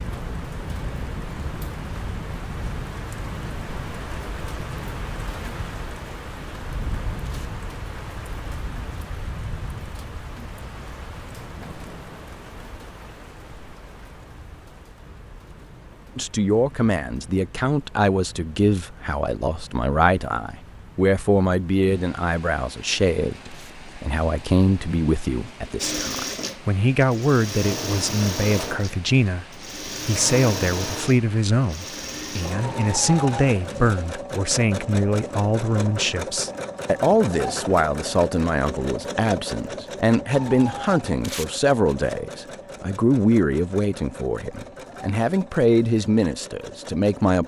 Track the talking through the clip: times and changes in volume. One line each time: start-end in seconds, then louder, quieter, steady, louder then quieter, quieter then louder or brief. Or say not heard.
16.1-29.4 steady
30.1-47.4 steady.